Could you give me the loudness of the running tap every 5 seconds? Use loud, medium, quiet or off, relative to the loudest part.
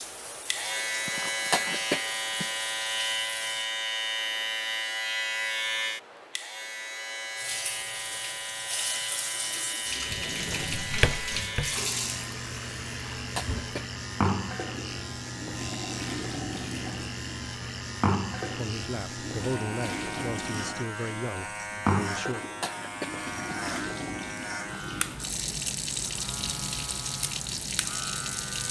medium, loud, loud, loud, loud, loud.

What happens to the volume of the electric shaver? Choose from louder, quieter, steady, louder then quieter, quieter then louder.
quieter.